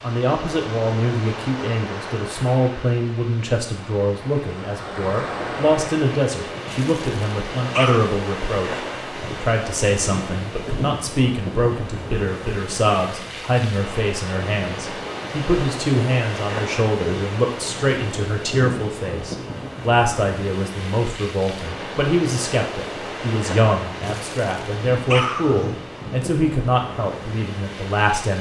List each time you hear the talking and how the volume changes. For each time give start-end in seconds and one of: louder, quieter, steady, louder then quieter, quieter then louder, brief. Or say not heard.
0.0-28.3 steady.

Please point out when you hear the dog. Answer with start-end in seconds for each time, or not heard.
6.7-8.2, 24.0-25.8.